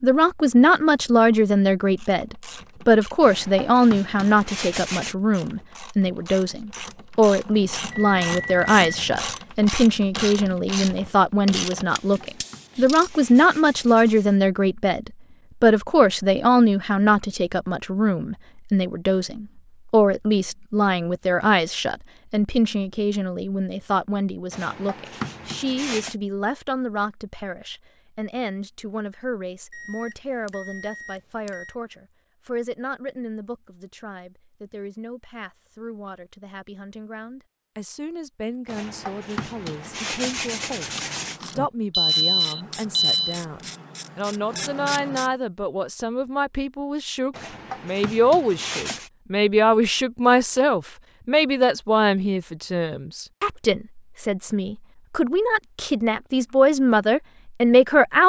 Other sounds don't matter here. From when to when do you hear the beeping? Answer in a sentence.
You can hear the beeping from 7.5 to 9.2 s, from 29.7 to 31.7 s and from 41.0 to 43.4 s.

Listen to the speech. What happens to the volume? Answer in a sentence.
The volume of the speech goes down, then up.